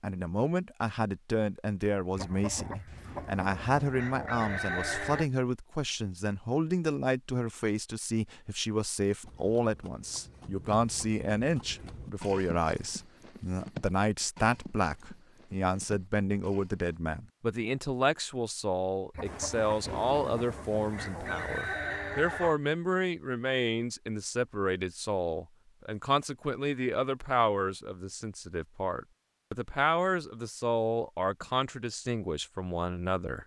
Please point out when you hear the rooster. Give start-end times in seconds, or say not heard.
2.1-5.3, 19.1-22.6.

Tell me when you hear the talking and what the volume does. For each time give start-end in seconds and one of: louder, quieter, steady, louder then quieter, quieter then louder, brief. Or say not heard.
0.0-33.4 steady.